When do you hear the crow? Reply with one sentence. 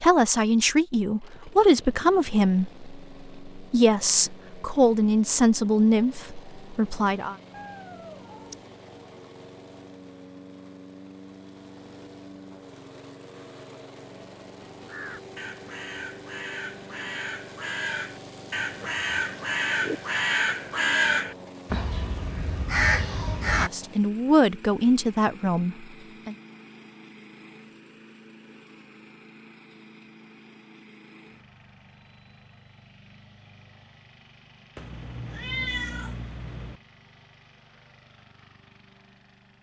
The crow can be heard from 14.8 to 23.7 s.